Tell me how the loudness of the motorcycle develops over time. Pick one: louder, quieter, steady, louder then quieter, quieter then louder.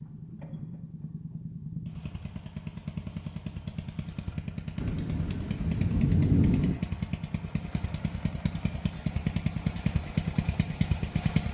louder.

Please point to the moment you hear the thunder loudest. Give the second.
6 s.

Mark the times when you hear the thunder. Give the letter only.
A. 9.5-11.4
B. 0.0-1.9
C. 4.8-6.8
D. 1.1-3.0
C.